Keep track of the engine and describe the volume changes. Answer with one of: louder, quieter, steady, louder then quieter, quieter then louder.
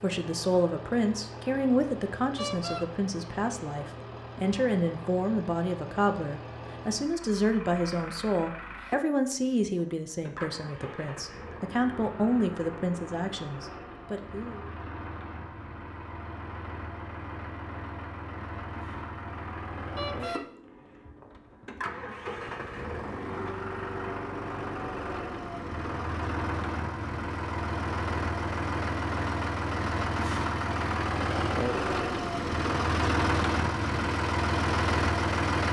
louder.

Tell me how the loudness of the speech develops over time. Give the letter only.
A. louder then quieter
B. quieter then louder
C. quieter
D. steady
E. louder
D.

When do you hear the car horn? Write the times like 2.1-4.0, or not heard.
2.4-2.9, 19.9-20.4.